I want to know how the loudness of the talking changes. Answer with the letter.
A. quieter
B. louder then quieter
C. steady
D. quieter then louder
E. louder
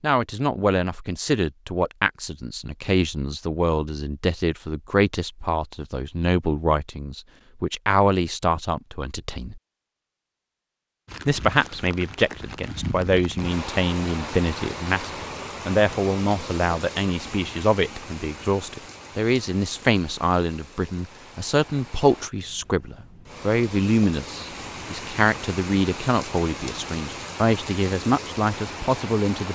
C.